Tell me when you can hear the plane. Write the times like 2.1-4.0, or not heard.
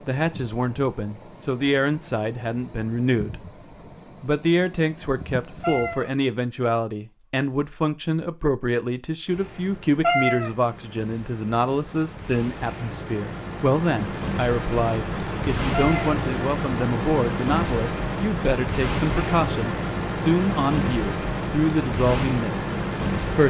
not heard.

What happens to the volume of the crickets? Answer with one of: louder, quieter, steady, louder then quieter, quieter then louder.
quieter then louder.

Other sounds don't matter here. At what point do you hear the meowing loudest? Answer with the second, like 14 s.
10 s.